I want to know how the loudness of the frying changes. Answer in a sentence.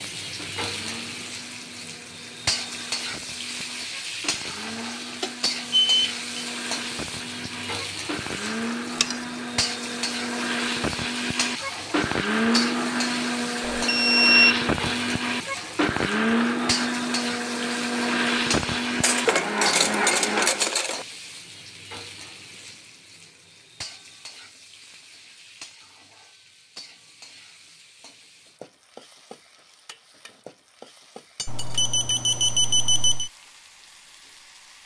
The loudness of the frying goes down.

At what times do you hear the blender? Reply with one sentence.
The blender can be heard from 0.2 to 20.6 s.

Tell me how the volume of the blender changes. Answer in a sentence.
The loudness of the blender goes up.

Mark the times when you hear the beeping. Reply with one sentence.
The beeping can be heard from 5.2 to 6.5 s, from 13.7 to 14.6 s and from 31.4 to 33.3 s.